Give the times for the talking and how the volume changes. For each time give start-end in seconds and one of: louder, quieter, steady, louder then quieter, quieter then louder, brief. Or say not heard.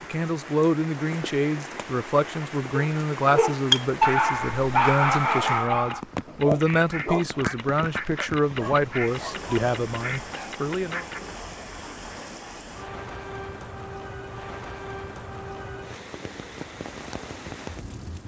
0.0-11.1 steady.